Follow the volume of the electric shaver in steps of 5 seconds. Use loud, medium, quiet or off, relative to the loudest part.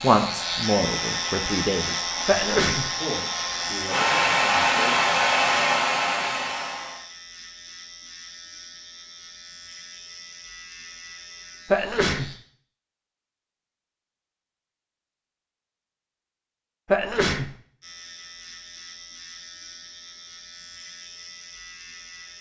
loud, quiet, quiet, quiet, quiet.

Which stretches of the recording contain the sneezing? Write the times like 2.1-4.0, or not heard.
2.2-2.9, 11.7-12.3, 16.9-17.5.